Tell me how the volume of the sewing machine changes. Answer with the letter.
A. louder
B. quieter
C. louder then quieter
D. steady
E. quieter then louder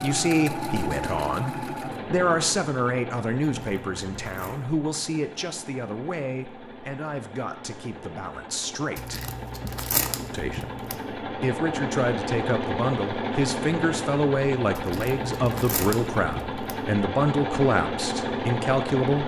E.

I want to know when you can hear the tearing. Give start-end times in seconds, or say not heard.
3.5-4.5, 8.9-10.9, 14.8-16.8.